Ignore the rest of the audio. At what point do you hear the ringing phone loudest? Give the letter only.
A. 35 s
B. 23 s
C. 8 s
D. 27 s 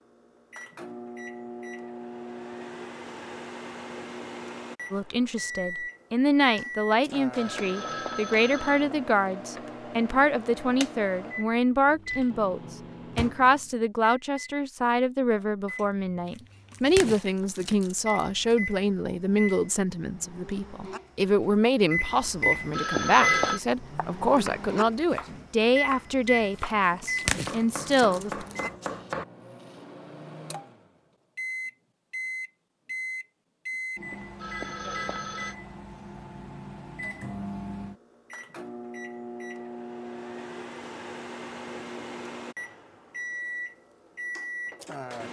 B.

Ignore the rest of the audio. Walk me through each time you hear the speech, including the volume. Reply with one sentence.
The speech can be heard from 4.9 to 28.4 s, at a steady volume.